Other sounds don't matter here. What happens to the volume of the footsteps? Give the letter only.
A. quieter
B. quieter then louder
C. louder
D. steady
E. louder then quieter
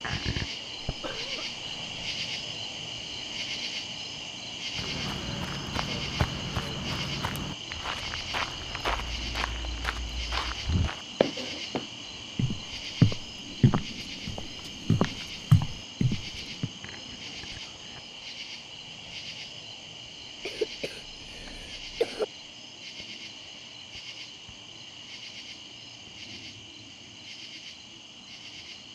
C.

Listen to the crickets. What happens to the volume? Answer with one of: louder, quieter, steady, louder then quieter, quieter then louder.
quieter.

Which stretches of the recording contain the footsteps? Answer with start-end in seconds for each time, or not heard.
4.7-16.7.